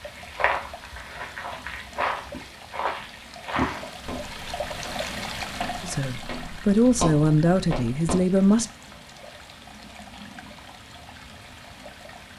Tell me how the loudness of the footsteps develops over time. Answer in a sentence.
The volume of the footsteps goes down, then up.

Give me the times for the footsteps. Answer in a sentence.
You can hear the footsteps from 0.0 to 8.2 s.